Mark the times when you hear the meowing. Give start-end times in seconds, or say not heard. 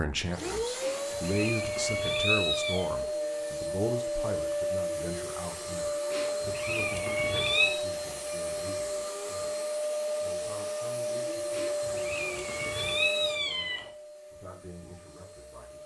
0.8-2.9, 6.1-7.8, 11.5-13.9.